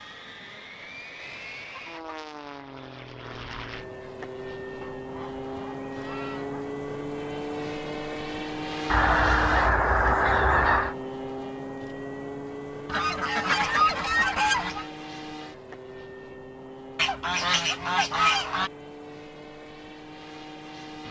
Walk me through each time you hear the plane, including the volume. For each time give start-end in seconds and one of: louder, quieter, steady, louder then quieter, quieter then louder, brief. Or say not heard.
0.0-21.0 louder then quieter.